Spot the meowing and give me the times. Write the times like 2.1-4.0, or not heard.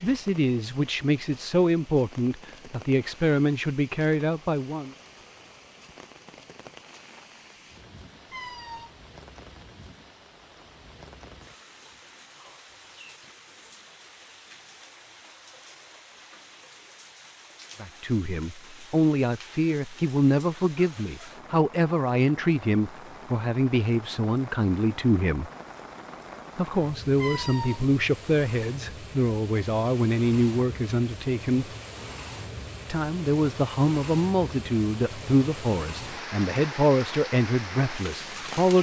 8.2-8.9, 27.1-27.9.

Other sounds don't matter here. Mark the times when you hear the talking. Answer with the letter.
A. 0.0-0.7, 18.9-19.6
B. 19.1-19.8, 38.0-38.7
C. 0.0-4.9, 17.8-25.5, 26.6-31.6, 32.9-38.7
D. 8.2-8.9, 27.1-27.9
C.